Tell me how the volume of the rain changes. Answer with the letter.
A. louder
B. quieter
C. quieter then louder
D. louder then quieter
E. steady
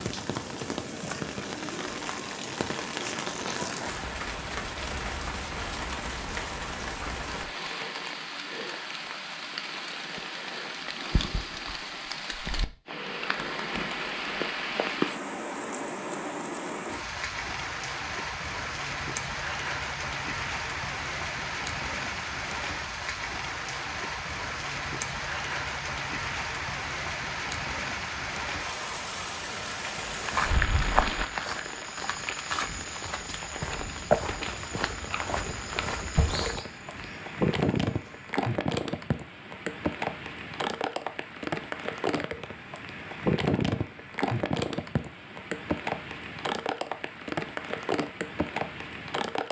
E.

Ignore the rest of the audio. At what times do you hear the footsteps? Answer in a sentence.
The footsteps can be heard from 29.9 to 38.4 s.